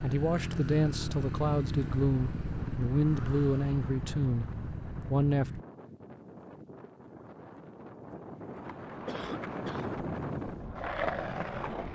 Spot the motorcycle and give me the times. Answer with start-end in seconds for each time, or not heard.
0.0-5.7.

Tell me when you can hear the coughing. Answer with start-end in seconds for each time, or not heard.
9.1-9.9.